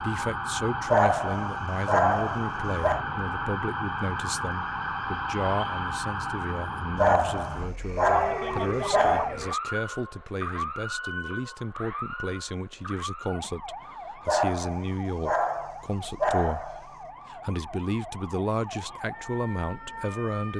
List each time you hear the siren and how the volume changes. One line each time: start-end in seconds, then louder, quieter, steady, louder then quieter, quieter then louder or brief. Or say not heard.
0.0-20.5 quieter.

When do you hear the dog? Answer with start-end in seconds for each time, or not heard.
0.9-3.0, 7.0-9.3, 14.2-16.9.